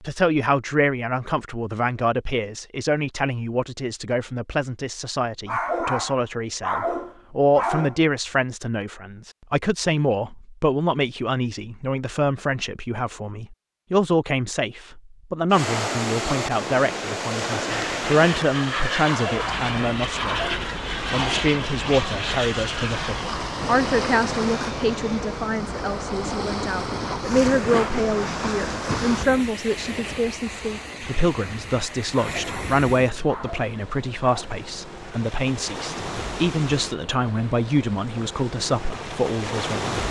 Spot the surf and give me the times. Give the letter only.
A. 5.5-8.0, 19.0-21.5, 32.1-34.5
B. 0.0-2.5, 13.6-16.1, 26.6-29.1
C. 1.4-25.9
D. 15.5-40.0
D.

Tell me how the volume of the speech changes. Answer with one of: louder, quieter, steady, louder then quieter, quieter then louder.
steady.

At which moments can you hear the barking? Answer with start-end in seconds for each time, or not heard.
5.5-8.0, 19.0-21.5, 32.1-34.5.